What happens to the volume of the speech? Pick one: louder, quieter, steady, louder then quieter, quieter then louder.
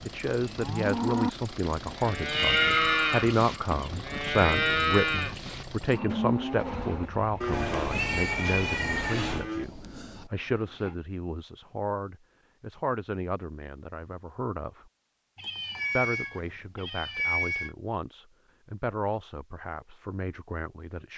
quieter.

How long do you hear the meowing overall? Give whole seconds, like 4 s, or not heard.
6 s.